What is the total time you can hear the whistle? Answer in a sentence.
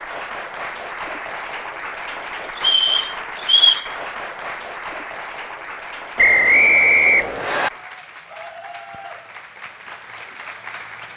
The whistle can be heard for 3 seconds in total.